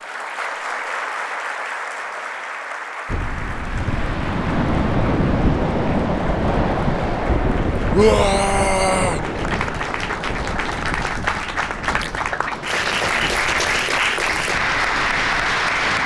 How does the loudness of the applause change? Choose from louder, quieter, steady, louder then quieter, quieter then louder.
quieter then louder.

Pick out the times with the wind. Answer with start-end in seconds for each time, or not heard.
3.0-16.0.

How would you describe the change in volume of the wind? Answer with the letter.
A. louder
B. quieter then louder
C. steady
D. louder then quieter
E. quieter
E.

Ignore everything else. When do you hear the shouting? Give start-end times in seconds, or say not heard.
7.9-9.2.